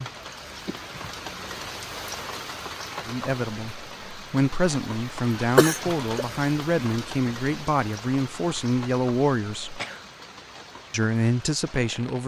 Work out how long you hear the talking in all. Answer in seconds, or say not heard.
8 s.